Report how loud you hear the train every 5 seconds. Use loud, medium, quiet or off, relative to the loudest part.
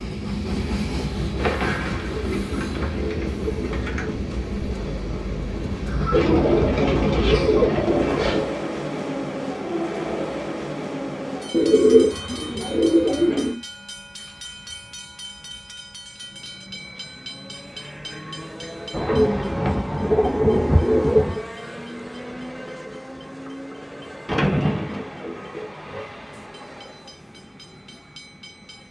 loud, loud, medium, medium, medium, quiet.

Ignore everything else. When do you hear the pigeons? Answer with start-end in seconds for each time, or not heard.
1.4-4.2, 6.1-8.5, 11.5-13.6, 18.9-21.4, 24.2-26.1.